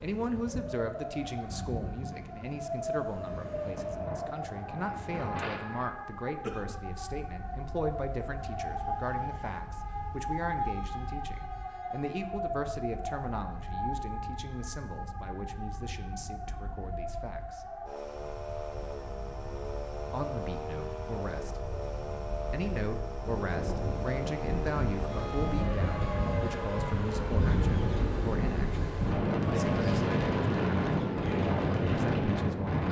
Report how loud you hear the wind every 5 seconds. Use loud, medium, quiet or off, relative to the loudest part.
quiet, quiet, quiet, quiet, quiet, loud, loud.